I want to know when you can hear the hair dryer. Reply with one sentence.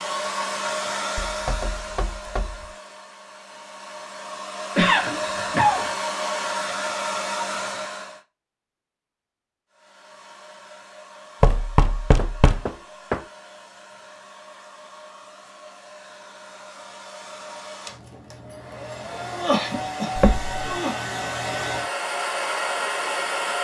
The hair dryer can be heard from 0.0 to 8.2 s and from 9.7 to 23.5 s.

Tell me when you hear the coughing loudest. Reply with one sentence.
The loudest moment of the coughing is at 5 seconds.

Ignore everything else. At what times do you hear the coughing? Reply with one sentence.
The coughing can be heard from 4.8 to 5.9 s and from 19.1 to 20.9 s.